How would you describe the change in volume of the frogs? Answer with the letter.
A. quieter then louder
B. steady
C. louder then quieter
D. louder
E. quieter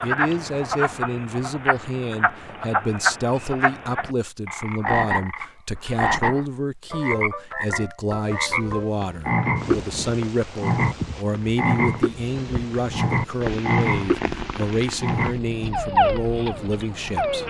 B.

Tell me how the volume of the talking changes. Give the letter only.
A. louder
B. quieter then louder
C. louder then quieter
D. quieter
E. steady
E.